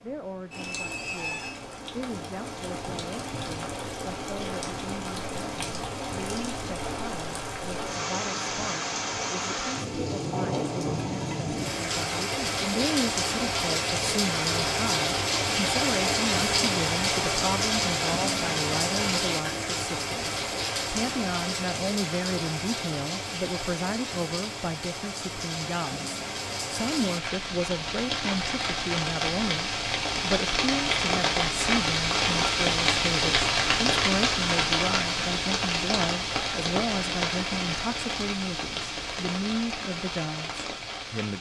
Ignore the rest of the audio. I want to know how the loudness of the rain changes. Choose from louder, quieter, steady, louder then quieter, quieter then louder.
louder.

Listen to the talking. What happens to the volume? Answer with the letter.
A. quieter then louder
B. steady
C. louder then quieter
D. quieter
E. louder
E.